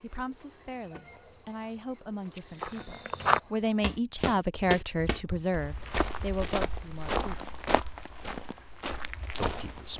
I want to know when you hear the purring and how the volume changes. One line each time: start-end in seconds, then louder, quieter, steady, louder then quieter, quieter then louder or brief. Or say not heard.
not heard.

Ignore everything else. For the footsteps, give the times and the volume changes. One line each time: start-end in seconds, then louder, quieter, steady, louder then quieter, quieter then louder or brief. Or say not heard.
2.4-9.9 quieter.